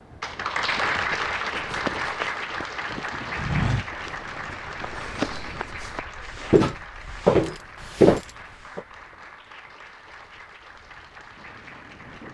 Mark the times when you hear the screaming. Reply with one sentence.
The screaming can't be heard in this clip.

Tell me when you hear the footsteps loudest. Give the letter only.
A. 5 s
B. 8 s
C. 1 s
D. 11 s
B.